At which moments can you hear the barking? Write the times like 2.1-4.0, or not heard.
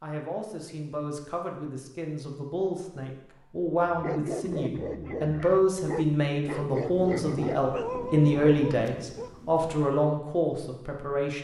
3.9-9.3.